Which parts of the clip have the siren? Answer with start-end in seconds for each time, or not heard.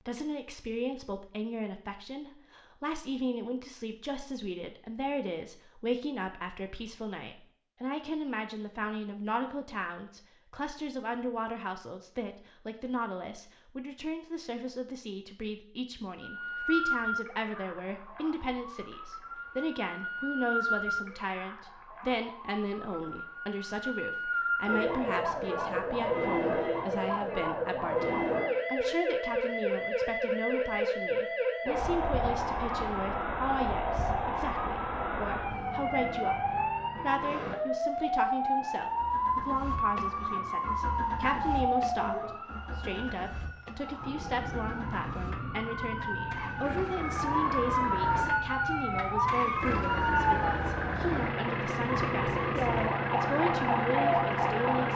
16.2-54.9.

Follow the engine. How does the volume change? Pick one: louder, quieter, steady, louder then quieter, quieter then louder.
louder.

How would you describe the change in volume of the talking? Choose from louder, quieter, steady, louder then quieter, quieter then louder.
steady.